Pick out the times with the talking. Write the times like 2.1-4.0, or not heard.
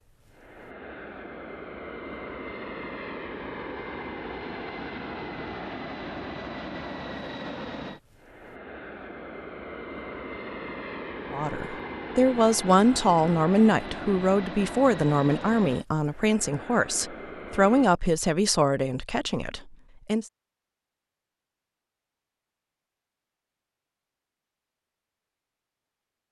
11.3-20.2.